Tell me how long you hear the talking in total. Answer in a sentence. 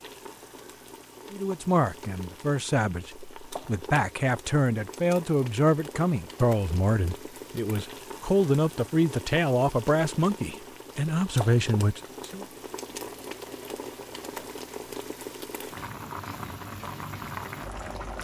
You can hear the talking for 11 seconds altogether.